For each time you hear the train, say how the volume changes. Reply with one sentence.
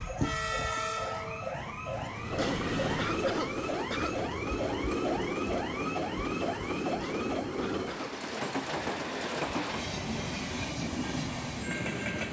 You can hear the train from 0.0 to 12.2 s, at a steady volume.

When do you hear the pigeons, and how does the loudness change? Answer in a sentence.
You can't hear the pigeons here.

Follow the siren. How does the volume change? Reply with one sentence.
The loudness of the siren stays about the same.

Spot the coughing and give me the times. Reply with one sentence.
The coughing can be heard from 2.4 to 4.2 s and from 7.0 to 7.9 s.